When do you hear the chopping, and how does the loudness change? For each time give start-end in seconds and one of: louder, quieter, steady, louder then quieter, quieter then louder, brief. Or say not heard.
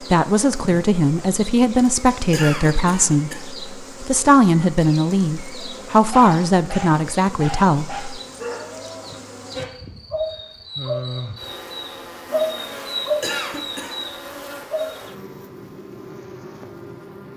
not heard.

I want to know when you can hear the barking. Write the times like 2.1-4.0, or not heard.
6.1-14.9.